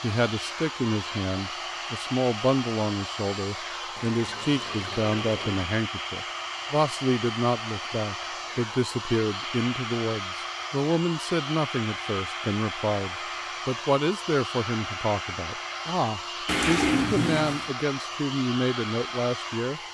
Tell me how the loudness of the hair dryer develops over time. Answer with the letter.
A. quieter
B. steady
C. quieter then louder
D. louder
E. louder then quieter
B.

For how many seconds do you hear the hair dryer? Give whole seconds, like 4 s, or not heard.
20 s.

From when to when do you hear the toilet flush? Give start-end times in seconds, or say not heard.
4.0-5.7, 16.4-17.7.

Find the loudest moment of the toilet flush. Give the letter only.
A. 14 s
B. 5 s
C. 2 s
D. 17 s
D.